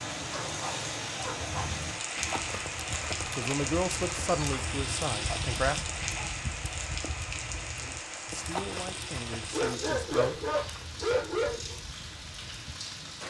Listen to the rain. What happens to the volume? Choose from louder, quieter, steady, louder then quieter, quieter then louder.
quieter.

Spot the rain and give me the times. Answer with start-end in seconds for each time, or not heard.
0.0-13.2.